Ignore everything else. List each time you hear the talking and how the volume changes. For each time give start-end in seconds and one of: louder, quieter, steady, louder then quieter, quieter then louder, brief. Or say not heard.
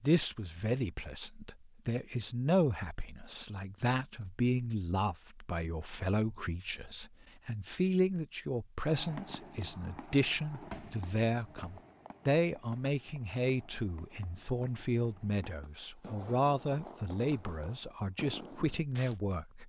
0.0-19.6 steady.